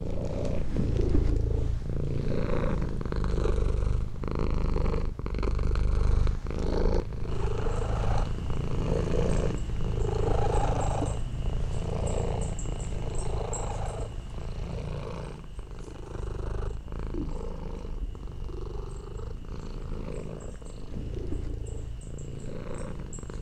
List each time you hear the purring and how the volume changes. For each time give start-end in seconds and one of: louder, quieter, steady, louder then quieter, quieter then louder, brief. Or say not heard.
0.0-23.3 quieter.